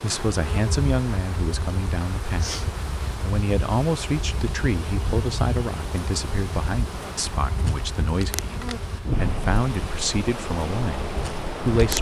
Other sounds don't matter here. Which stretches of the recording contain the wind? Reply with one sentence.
You can hear the wind from 0.0 to 11.9 s.